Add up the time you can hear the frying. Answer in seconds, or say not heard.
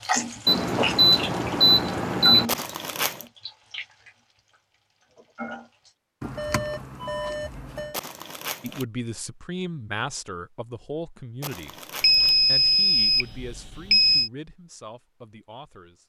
6 s.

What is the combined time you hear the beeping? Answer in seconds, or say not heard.
6 s.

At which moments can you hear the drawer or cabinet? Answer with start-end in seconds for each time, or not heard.
not heard.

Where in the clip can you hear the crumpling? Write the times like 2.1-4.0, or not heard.
2.5-3.2, 7.9-8.8, 11.4-12.3.